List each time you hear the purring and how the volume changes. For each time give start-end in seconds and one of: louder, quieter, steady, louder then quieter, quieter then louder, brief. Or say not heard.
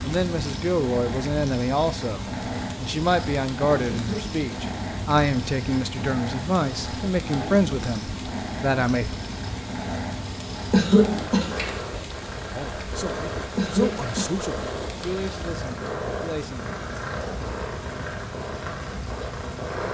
0.0-19.9 steady.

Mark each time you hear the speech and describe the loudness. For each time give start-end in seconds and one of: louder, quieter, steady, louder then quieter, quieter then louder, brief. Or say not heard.
0.0-9.2 steady
12.4-16.6 louder then quieter.